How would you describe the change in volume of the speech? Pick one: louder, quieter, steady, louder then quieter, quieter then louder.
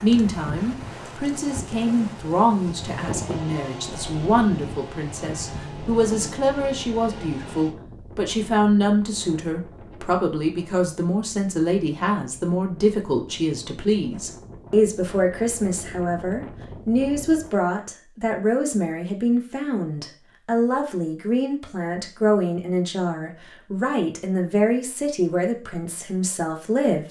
steady.